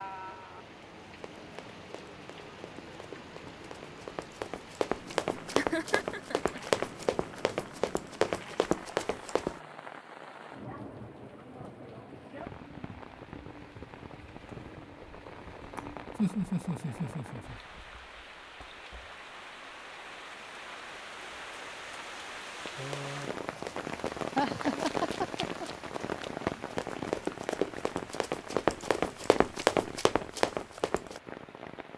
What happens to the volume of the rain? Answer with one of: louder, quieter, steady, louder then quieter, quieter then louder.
louder.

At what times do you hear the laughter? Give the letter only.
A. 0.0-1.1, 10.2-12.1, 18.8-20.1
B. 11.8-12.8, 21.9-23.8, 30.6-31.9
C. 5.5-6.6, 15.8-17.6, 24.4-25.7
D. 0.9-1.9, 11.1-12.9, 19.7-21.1
C.